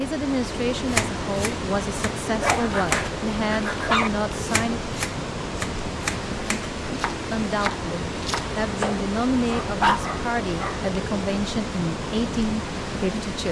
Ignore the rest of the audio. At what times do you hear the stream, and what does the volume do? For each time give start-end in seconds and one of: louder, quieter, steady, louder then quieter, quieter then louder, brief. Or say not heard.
0.0-13.4 steady.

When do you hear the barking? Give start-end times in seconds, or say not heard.
2.3-4.1, 9.4-10.8.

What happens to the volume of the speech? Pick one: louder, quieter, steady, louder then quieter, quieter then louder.
steady.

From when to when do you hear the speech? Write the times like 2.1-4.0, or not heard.
0.0-4.8, 7.3-13.4.